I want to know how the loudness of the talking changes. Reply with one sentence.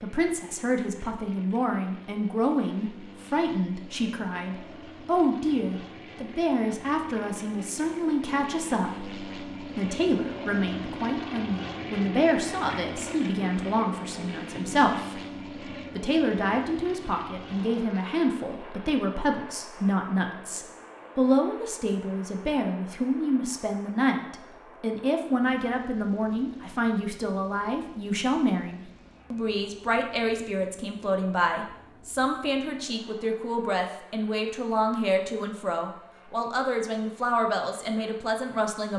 The loudness of the talking stays about the same.